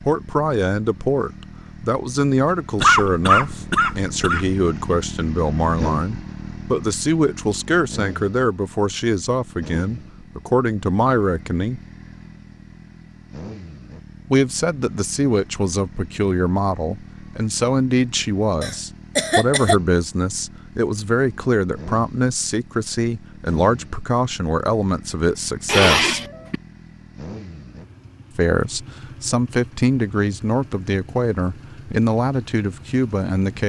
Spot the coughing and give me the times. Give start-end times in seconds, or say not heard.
2.8-4.5, 18.6-19.8, 25.6-26.6.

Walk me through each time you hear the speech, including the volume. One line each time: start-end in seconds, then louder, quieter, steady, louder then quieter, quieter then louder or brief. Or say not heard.
0.1-11.8 steady
14.3-26.2 steady
28.4-33.6 steady.